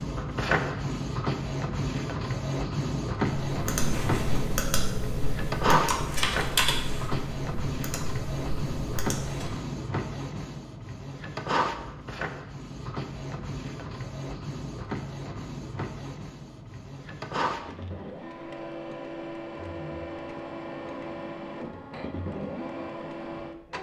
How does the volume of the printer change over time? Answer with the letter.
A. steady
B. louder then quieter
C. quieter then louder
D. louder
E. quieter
E.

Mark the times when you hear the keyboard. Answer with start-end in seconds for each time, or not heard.
3.5-9.6.